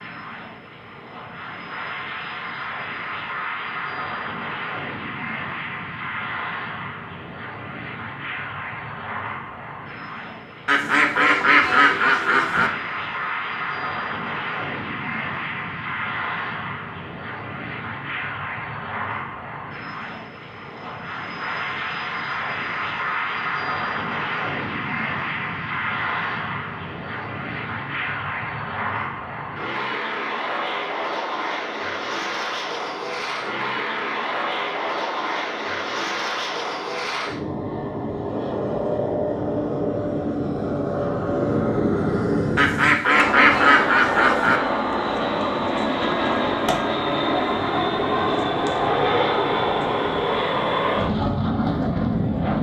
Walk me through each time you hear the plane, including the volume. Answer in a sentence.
You can hear the plane from 0.0 to 52.5 s, getting louder.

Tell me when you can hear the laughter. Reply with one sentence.
You can't hear the laughter here.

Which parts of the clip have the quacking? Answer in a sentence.
You can hear the quacking from 10.7 to 12.7 s and from 42.5 to 44.6 s.